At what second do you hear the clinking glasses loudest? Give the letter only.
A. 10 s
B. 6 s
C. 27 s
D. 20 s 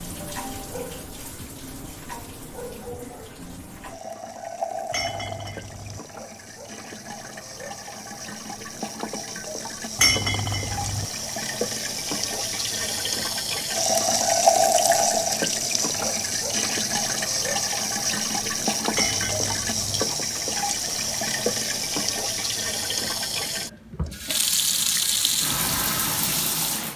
A.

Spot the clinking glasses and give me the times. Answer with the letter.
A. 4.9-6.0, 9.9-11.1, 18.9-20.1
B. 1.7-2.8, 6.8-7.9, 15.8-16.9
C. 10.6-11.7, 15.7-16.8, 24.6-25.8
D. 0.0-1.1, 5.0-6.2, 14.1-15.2
A.